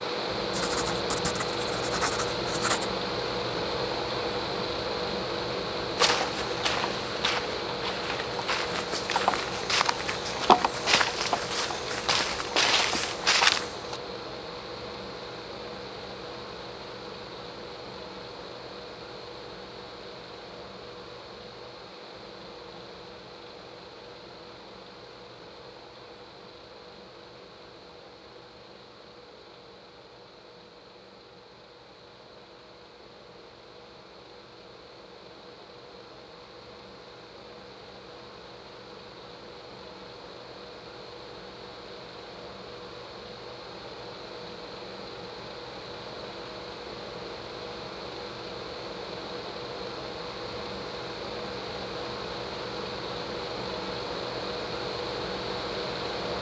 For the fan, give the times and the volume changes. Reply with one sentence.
The fan can be heard from 0.0 to 56.3 s, getting quieter then louder.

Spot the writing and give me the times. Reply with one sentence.
You can hear the writing from 0.5 to 2.9 s.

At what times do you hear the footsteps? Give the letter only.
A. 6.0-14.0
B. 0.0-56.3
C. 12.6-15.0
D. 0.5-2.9
A.